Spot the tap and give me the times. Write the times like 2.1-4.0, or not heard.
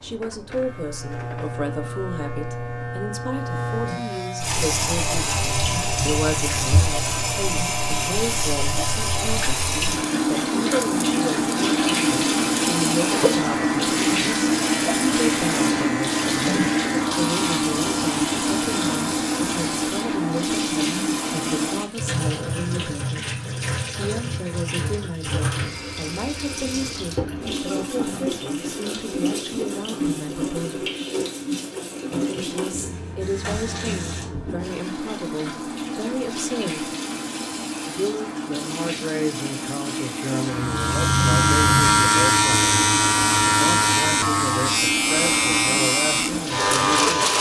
4.4-47.3.